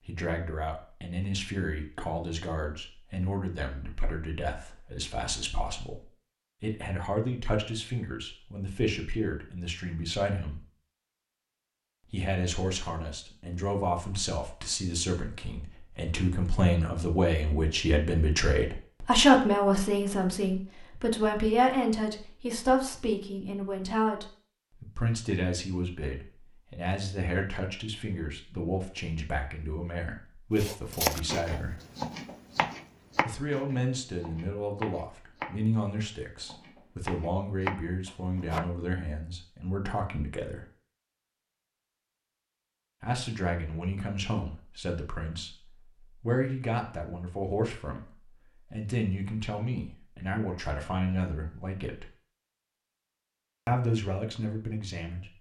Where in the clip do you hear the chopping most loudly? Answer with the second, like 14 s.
31 s.